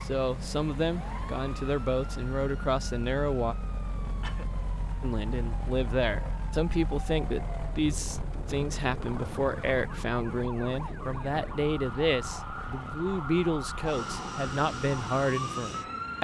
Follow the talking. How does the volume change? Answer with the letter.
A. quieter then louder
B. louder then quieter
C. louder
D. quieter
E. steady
E.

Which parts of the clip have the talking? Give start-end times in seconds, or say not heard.
0.0-3.5, 5.0-16.1.